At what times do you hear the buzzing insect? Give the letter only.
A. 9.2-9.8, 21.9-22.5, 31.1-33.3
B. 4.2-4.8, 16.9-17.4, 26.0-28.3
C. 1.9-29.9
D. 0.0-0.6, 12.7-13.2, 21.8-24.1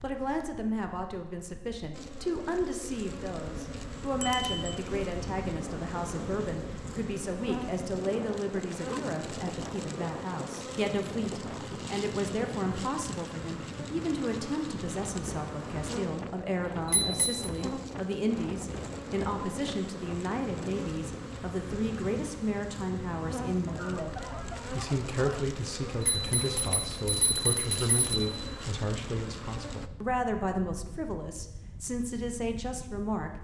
C.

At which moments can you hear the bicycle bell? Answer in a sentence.
You can hear the bicycle bell from 4.2 to 4.8 s, from 16.9 to 17.4 s and from 26.0 to 28.3 s.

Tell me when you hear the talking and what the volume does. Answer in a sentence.
The talking can be heard from 0.0 to 33.3 s, at a steady volume.